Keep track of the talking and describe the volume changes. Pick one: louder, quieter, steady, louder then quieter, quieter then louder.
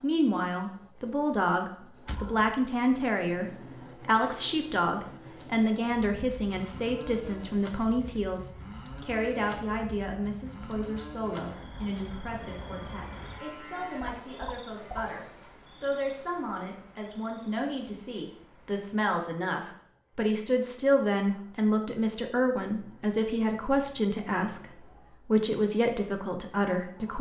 quieter then louder.